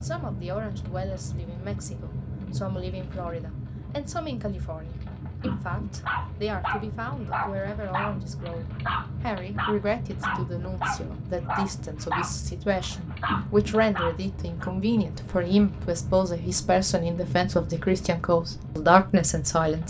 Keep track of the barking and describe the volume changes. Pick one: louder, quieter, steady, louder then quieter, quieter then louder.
steady.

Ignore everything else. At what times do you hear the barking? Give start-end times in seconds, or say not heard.
5.4-14.8.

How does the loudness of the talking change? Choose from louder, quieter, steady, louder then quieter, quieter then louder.
louder.